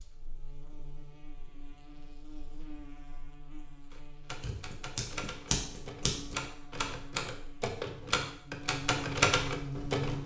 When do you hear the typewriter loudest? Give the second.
9 s.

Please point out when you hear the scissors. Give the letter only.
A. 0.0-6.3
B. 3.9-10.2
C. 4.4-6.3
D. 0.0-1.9
C.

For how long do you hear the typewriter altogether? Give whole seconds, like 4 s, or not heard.
6 s.